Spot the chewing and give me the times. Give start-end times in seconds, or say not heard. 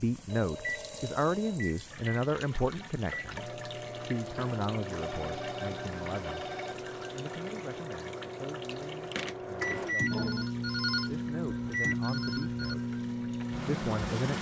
not heard.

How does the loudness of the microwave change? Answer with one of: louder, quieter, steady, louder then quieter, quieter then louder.
louder.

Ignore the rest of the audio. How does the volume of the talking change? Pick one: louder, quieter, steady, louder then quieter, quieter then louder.
quieter then louder.